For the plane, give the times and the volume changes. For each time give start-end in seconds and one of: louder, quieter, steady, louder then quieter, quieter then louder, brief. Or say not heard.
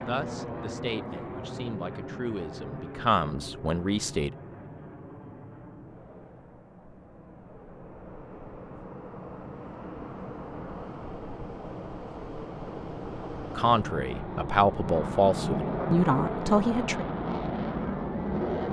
0.0-18.6 quieter then louder.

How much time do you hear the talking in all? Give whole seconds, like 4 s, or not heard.
8 s.